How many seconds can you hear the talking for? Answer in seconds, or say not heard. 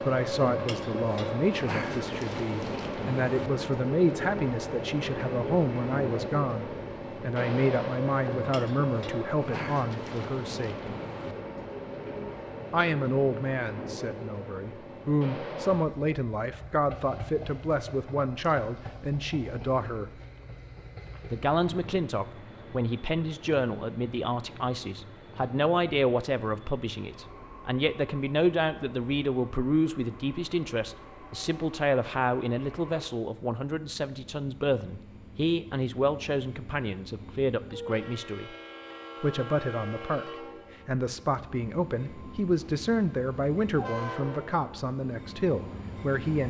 42 s.